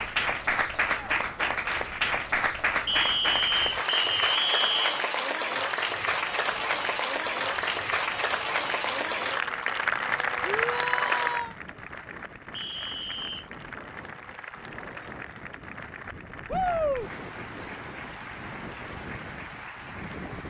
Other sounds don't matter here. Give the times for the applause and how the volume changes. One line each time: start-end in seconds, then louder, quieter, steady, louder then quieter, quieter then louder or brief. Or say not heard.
0.0-20.4 quieter.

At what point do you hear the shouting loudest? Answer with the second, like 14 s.
17 s.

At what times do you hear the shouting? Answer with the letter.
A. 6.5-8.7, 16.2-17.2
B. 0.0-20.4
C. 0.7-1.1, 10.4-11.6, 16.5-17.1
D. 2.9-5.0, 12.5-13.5
C.